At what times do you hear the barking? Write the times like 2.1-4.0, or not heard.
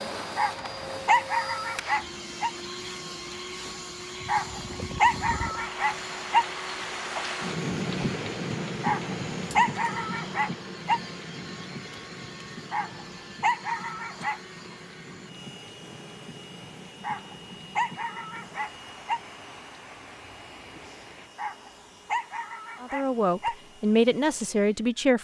0.3-2.5, 4.2-6.5, 8.8-11.0, 12.7-14.4, 17.0-19.2, 21.4-23.6.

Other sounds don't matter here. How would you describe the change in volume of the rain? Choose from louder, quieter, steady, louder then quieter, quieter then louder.
louder then quieter.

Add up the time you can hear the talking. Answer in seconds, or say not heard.
2 s.